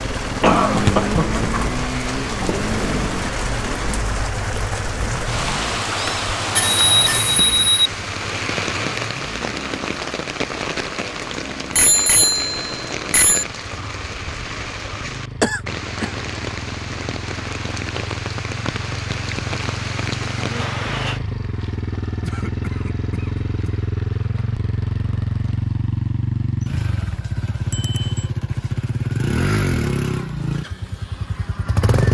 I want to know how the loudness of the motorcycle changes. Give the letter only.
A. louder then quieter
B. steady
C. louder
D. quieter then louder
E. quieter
D.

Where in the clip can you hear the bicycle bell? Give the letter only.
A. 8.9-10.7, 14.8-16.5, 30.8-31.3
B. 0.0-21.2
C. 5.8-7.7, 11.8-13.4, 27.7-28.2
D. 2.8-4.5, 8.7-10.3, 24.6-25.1
C.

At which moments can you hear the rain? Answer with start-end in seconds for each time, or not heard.
0.0-21.2.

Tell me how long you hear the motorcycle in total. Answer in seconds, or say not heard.
32 s.